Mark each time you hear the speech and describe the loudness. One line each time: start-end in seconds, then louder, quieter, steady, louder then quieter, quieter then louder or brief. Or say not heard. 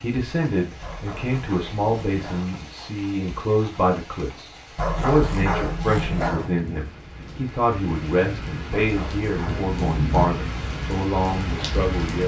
0.0-12.2 steady.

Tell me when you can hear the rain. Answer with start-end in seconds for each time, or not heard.
0.0-12.2.